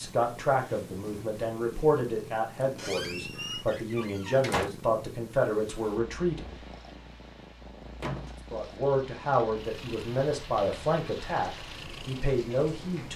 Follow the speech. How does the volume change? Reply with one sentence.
The loudness of the speech stays about the same.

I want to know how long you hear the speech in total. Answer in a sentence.
You can hear the speech for 11 seconds altogether.